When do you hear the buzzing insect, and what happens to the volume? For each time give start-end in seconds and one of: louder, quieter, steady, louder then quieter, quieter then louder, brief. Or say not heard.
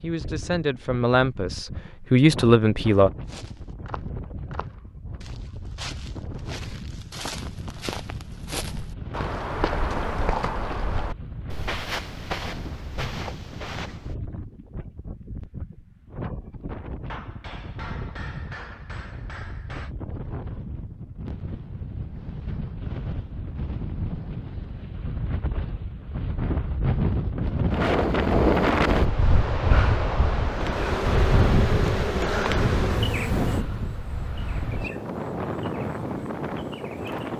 30.4-37.3 quieter.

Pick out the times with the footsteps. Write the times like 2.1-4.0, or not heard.
3.2-14.2.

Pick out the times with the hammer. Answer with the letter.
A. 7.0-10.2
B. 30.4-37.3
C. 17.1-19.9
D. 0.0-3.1
C.